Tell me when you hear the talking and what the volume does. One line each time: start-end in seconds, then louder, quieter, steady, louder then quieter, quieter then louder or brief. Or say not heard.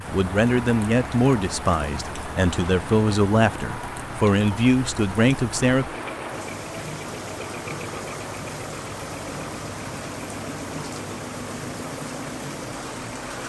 0.0-5.8 quieter then louder.